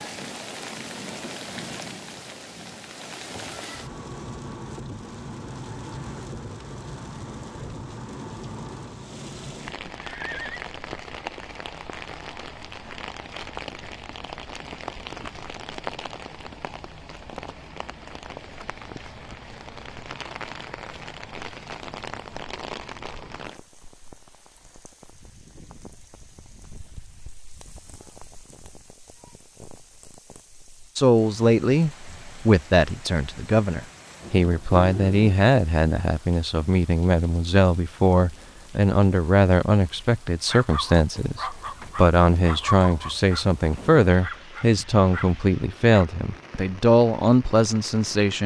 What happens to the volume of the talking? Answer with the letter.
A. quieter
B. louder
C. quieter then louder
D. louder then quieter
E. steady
E.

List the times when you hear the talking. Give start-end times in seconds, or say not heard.
30.9-48.4.